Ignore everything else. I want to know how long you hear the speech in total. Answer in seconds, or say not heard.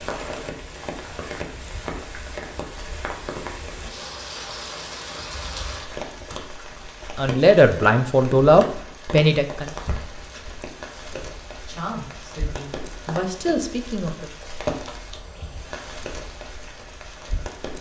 6 s.